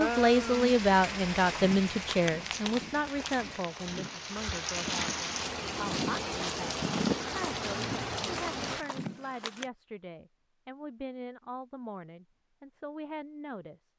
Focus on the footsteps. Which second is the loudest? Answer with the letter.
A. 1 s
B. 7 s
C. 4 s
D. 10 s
B.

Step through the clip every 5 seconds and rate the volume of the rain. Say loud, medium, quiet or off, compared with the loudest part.
loud, loud, off.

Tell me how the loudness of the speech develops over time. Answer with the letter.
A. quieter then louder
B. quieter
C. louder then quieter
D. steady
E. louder
B.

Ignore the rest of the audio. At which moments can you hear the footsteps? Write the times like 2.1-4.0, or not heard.
1.5-9.7.